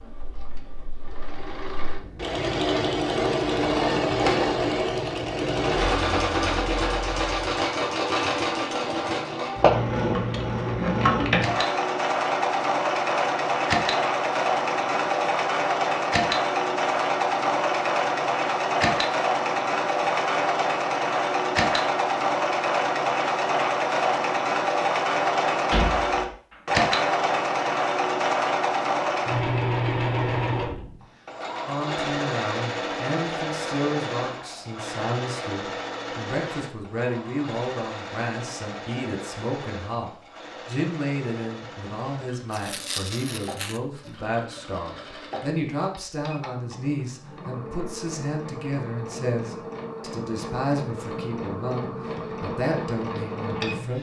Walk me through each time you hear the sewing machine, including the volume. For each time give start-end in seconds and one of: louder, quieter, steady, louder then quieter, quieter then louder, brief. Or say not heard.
0.0-53.9 quieter.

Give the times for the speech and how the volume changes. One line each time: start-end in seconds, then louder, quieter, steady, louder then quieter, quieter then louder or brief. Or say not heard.
31.6-53.9 steady.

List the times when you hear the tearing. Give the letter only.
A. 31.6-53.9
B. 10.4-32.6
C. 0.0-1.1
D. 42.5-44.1
D.